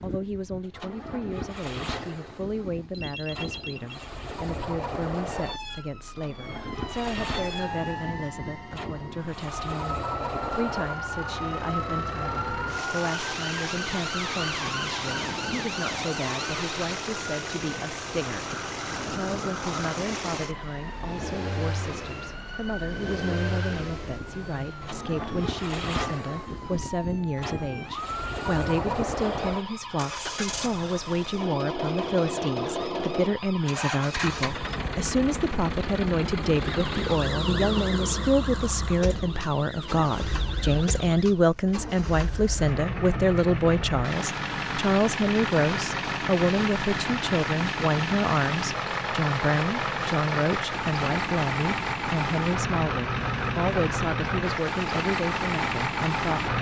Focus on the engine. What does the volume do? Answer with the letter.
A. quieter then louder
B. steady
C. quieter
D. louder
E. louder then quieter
D.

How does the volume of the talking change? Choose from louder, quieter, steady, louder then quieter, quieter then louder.
louder.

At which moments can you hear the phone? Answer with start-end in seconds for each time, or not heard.
2.9-4.0.